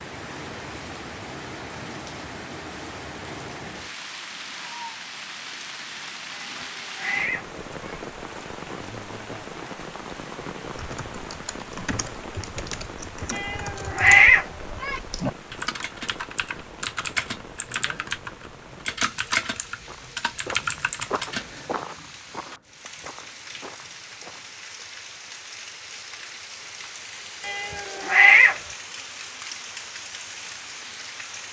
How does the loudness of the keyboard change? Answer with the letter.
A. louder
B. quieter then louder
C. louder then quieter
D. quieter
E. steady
A.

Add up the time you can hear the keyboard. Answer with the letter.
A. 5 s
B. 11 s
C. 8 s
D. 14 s
B.